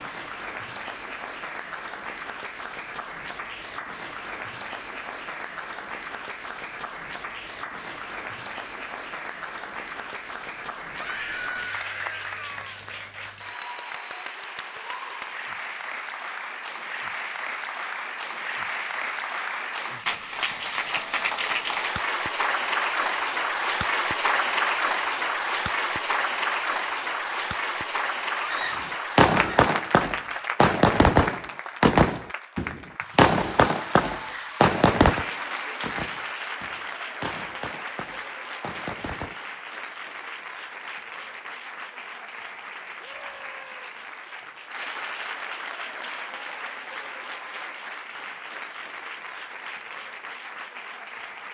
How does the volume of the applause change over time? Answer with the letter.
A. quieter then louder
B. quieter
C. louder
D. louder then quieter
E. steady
D.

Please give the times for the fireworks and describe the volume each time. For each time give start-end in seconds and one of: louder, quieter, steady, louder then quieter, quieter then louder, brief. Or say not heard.
29.1-39.4 quieter.